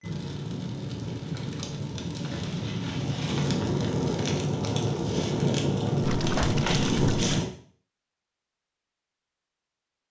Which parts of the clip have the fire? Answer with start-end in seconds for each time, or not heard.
0.0-7.5.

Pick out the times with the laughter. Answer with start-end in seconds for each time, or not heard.
not heard.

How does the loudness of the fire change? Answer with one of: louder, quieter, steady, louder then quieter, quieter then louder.
louder.